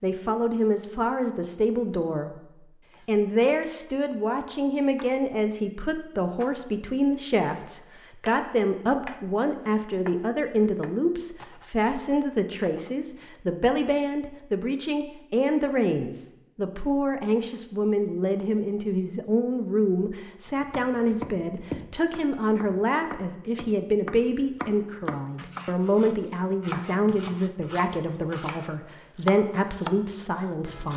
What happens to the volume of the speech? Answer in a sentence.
The volume of the speech stays about the same.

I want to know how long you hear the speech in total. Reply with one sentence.
You can hear the speech for 31 seconds altogether.